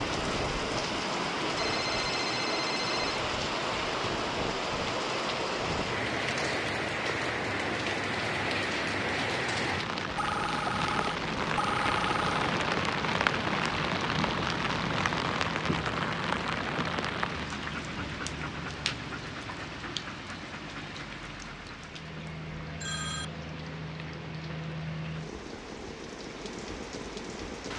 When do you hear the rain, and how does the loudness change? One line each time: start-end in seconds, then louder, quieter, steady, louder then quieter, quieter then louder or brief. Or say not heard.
0.0-27.7 quieter.